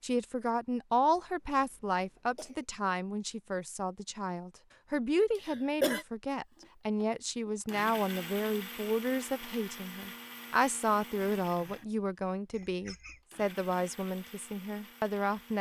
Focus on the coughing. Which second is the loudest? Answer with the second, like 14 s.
6 s.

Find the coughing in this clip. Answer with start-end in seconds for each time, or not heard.
1.1-2.6, 5.3-6.0, 12.5-13.2.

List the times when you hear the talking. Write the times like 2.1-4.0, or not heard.
0.0-15.5.